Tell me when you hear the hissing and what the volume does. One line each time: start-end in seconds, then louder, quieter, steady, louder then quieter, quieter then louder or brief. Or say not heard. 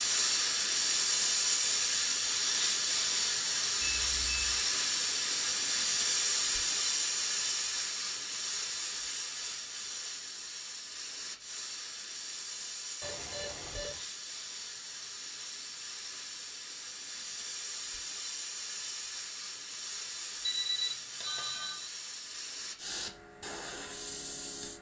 0.0-24.7 quieter.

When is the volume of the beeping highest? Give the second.
21 s.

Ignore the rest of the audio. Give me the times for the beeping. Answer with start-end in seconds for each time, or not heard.
3.8-4.5, 13.0-14.0, 20.4-21.9.